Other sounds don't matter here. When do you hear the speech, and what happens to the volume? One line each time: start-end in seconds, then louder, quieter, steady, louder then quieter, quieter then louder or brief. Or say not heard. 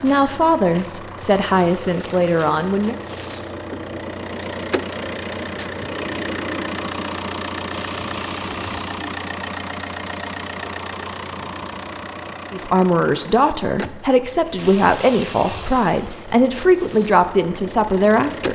0.0-3.0 brief
12.5-18.4 steady.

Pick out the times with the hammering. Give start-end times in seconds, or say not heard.
not heard.